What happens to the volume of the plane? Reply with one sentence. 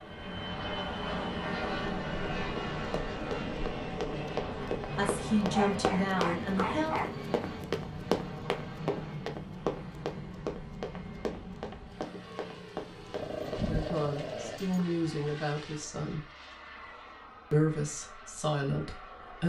The volume of the plane goes down.